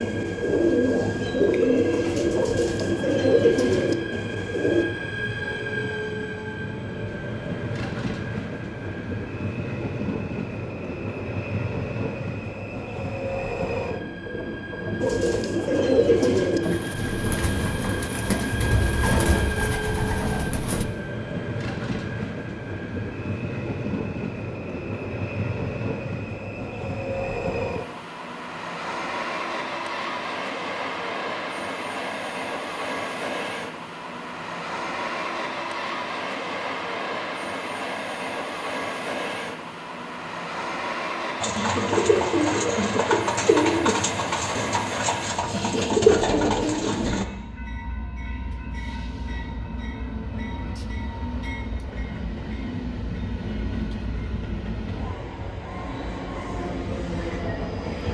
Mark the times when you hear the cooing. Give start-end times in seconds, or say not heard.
0.0-4.8, 15.0-20.9, 41.4-47.2.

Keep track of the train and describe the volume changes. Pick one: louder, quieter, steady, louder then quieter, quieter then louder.
steady.